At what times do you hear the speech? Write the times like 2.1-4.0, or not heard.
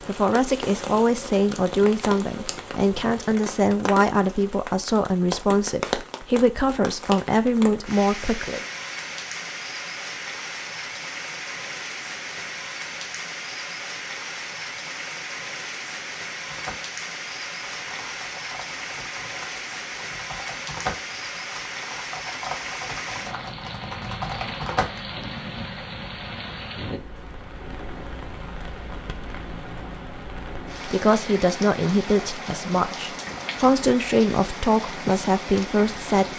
0.1-8.6, 30.9-36.2.